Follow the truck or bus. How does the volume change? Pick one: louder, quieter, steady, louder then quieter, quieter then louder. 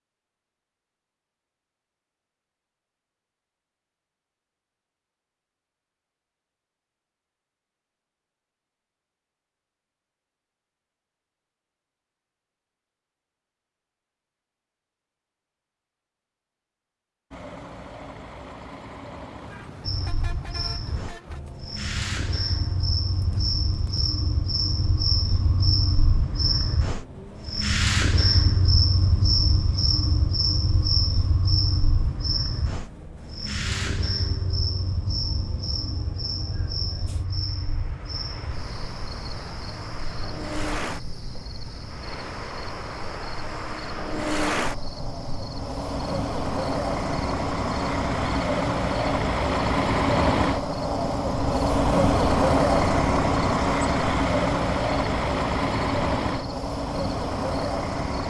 louder.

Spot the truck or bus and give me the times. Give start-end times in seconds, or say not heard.
17.3-58.2.